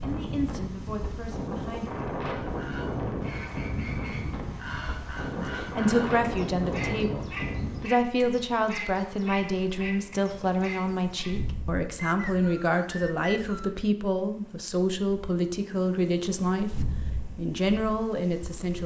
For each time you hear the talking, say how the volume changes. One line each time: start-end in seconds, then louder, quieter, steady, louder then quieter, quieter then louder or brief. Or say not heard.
0.0-2.0 brief
5.5-18.8 steady.